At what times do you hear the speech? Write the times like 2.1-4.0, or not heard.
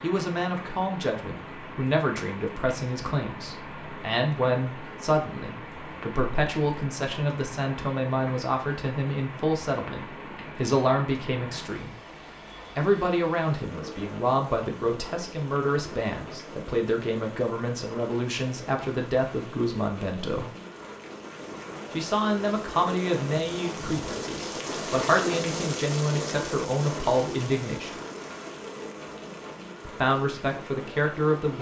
0.0-11.9, 12.8-20.5, 21.9-28.0, 29.9-31.5.